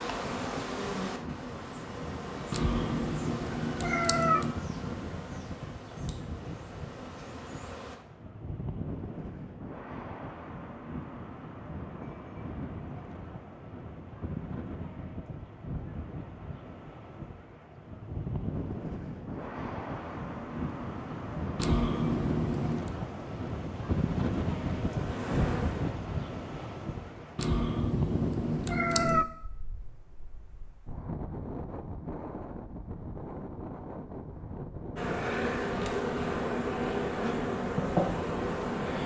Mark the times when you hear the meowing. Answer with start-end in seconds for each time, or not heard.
2.5-4.5, 21.6-22.9, 27.4-29.2.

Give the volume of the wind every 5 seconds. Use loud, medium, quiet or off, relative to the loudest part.
medium, medium, medium, medium, loud, loud, medium, medium.